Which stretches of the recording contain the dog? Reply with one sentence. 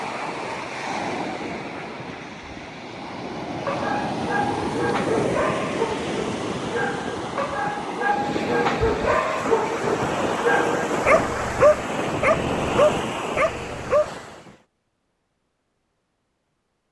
You can hear the dog from 3.6 to 14.1 s.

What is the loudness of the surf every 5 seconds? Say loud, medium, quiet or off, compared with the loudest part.
loud, loud, loud, off.